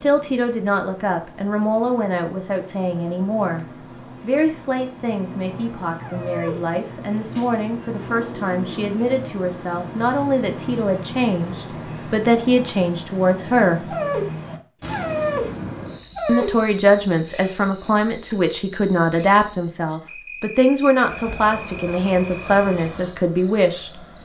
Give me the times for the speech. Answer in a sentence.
The speech can be heard from 0.0 to 13.9 s and from 16.2 to 23.9 s.